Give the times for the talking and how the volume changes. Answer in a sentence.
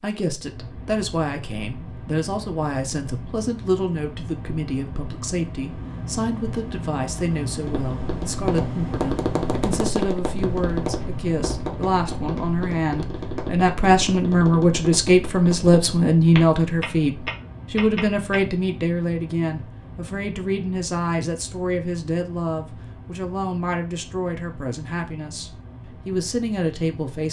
The talking can be heard from 0.0 to 27.2 s, getting louder then quieter.